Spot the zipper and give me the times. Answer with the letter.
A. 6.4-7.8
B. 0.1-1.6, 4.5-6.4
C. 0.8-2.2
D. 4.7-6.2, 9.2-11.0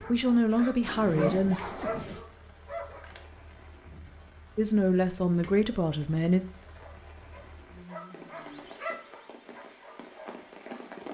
C.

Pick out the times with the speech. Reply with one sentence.
The speech can be heard from 0.1 to 1.6 s and from 4.5 to 6.4 s.